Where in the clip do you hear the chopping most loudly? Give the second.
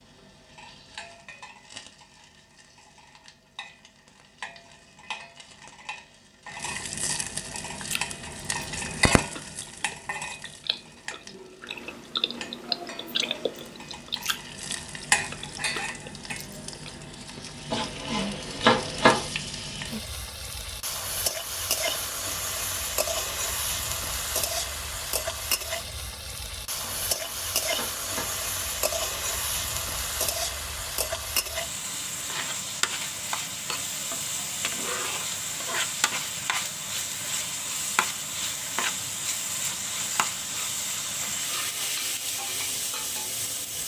19 s.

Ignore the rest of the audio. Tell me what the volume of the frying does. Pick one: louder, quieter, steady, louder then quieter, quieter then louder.
louder.